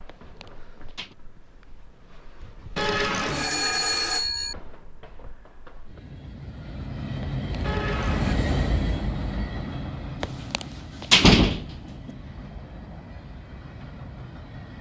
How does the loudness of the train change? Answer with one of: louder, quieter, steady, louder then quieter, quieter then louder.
louder then quieter.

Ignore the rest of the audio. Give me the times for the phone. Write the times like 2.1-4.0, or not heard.
2.8-4.5, 7.6-8.3.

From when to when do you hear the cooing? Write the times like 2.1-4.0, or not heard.
not heard.